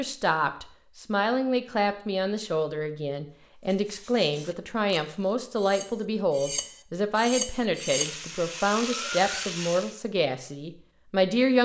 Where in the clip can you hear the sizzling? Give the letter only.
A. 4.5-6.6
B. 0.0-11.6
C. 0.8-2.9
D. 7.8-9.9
D.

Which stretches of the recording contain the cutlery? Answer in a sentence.
The cutlery can be heard from 3.6 to 9.6 s.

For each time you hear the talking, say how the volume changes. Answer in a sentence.
The talking can be heard from 0.0 to 11.6 s, at a steady volume.